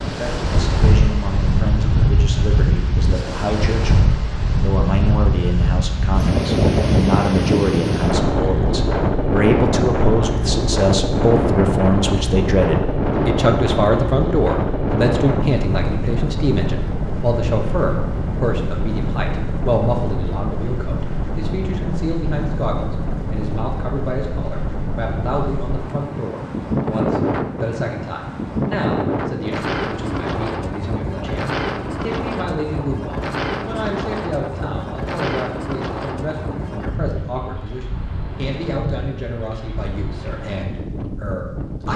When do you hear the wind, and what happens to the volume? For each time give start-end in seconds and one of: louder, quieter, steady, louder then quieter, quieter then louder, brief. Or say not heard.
0.0-41.9 quieter.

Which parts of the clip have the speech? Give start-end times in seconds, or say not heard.
0.0-41.9.